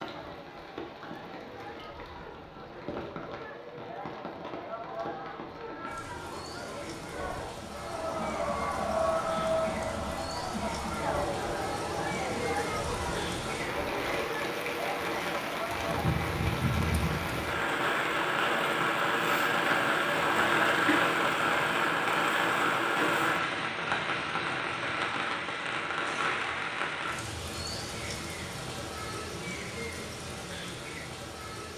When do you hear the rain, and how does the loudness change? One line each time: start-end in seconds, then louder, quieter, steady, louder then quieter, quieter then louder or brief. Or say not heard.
0.0-31.7 louder then quieter.